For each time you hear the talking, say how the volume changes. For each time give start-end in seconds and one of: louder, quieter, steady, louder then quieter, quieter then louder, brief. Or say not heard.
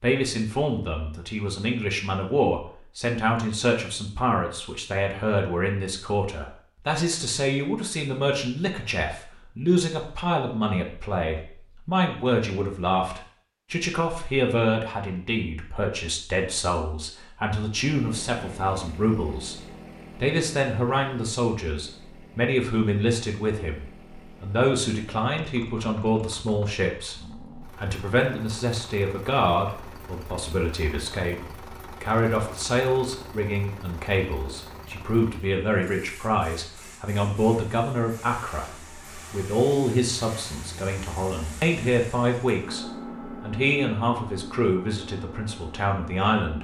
0.0-19.6 steady
20.2-46.5 steady.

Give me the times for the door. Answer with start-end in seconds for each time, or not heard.
not heard.